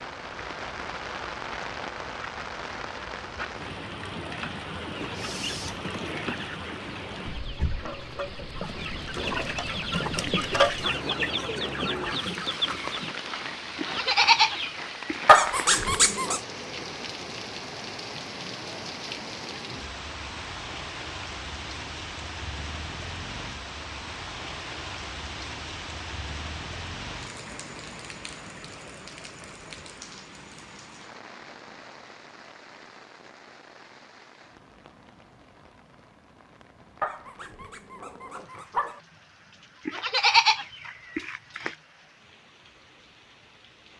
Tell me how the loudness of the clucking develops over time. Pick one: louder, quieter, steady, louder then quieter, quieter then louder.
louder then quieter.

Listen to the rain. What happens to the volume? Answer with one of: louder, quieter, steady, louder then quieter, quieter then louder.
quieter.